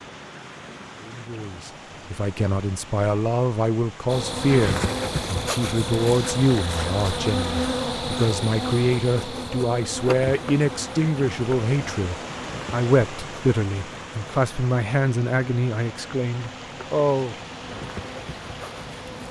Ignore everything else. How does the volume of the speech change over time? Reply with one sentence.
The loudness of the speech stays about the same.